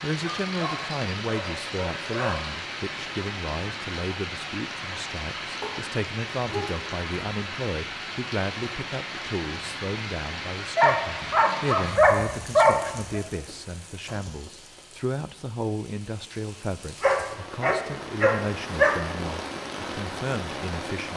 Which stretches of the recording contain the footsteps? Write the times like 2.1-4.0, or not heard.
not heard.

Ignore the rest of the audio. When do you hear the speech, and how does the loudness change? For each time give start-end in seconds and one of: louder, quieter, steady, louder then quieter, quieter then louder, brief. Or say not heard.
0.0-21.1 steady.